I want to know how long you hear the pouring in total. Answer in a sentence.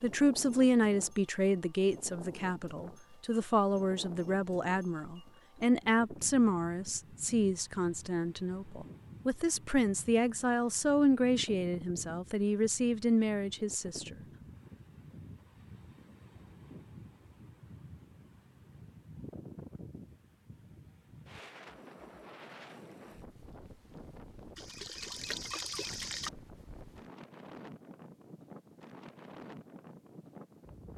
You can hear the pouring for 2 seconds altogether.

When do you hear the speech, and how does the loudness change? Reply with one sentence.
You can hear the speech from 0.0 to 14.2 s, at a steady volume.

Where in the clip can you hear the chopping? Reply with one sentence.
The chopping can't be heard in this clip.